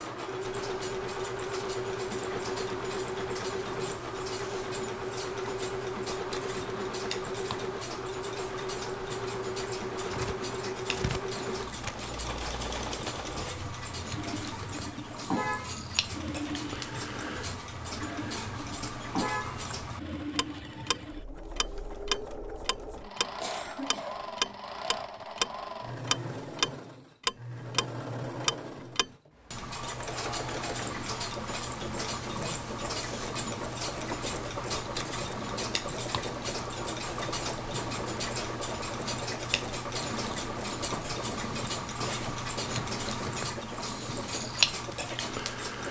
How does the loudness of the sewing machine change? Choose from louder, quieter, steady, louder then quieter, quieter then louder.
quieter.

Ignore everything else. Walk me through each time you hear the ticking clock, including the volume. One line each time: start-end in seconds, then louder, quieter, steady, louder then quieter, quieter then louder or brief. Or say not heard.
0.0-45.8 louder.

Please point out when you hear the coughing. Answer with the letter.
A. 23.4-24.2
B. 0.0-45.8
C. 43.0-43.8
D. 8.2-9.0
A.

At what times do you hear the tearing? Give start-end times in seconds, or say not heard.
9.9-11.9.